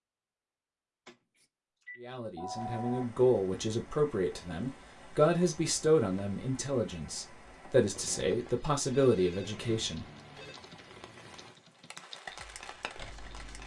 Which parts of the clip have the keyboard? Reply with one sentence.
You can hear the keyboard from 9.9 to 13.6 s.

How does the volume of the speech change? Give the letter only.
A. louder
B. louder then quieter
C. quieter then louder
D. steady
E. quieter
D.